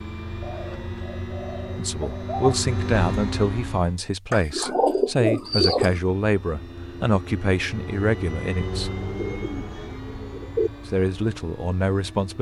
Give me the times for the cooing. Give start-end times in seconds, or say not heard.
0.4-2.5, 4.3-6.0, 9.2-10.7.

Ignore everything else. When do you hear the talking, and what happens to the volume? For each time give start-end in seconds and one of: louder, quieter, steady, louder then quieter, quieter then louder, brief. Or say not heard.
1.8-8.9 steady
10.8-12.3 brief.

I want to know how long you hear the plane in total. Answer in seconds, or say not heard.
11 s.